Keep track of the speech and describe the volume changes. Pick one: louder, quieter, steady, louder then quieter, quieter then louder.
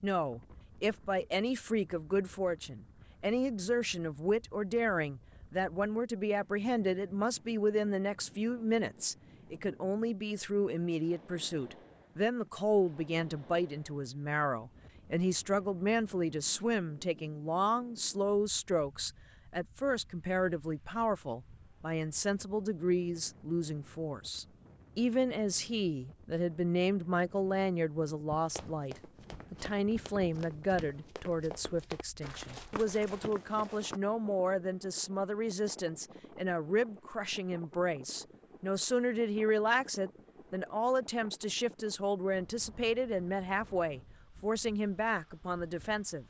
steady.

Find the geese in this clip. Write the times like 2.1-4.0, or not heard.
not heard.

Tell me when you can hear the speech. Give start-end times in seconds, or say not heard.
0.0-46.2.